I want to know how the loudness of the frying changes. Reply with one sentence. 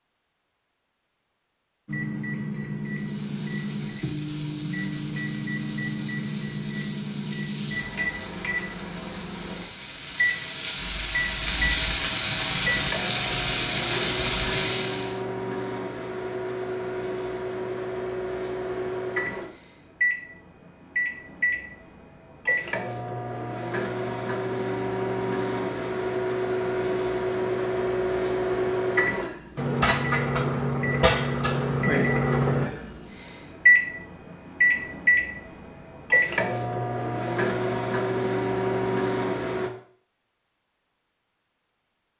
The loudness of the frying goes up.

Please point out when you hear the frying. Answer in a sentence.
You can hear the frying from 2.8 to 15.2 s.